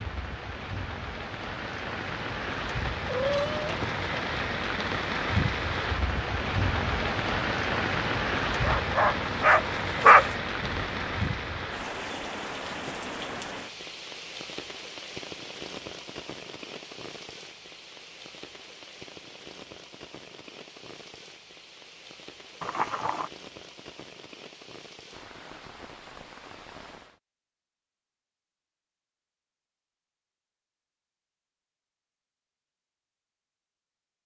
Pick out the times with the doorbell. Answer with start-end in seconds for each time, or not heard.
not heard.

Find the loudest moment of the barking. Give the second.
10 s.